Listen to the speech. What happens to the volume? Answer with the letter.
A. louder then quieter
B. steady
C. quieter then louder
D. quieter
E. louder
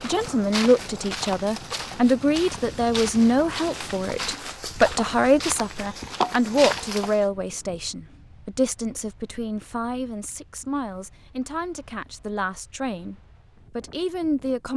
D.